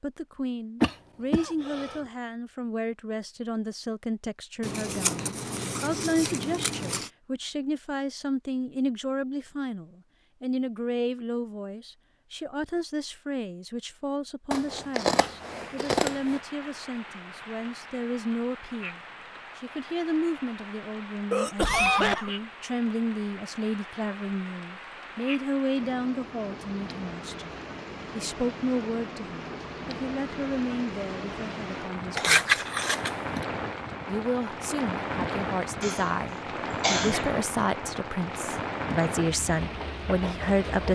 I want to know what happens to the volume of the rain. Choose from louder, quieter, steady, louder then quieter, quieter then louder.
louder.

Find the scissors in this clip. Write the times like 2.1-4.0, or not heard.
4.6-7.1, 14.5-16.4, 32.1-33.4.